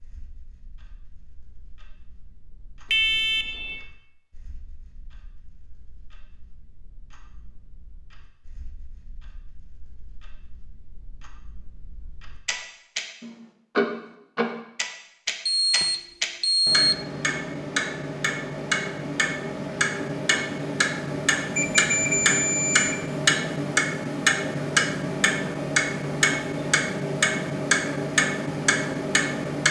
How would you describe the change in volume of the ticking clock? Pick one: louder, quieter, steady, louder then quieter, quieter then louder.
louder.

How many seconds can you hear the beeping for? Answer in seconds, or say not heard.
4 s.